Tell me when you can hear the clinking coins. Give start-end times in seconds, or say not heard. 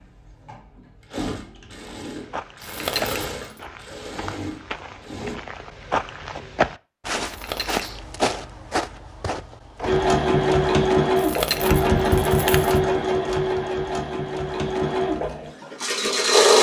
2.6-3.6, 7.2-7.8, 11.2-12.8.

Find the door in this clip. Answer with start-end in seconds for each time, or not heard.
not heard.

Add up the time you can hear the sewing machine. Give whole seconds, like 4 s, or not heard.
12 s.